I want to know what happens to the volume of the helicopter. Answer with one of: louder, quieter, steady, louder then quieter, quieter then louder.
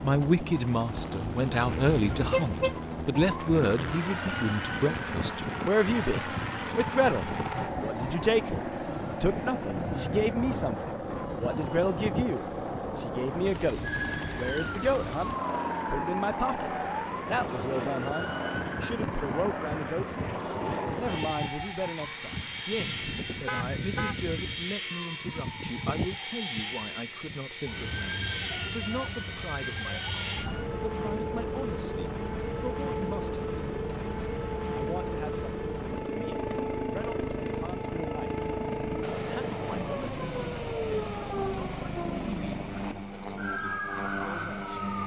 steady.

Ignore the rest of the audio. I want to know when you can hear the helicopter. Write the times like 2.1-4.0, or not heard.
0.0-45.0.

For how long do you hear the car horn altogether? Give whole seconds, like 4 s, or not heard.
2 s.